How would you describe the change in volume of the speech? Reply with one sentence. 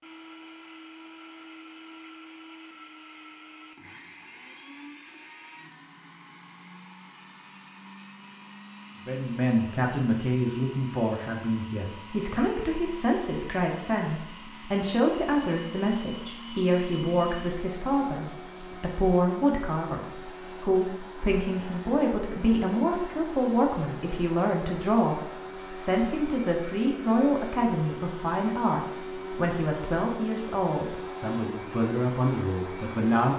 The loudness of the speech stays about the same.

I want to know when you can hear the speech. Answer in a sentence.
The speech can be heard from 9.1 to 33.3 s.